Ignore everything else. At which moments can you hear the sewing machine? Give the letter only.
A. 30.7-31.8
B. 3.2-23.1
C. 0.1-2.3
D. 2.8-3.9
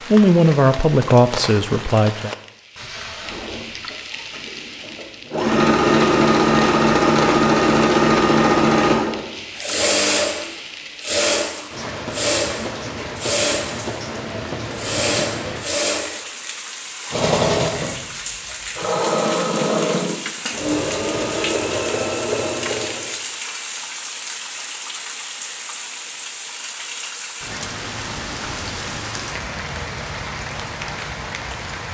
B.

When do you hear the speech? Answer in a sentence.
The speech can be heard from 0.1 to 2.3 s.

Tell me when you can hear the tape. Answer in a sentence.
You can hear the tape from 2.8 to 3.9 s.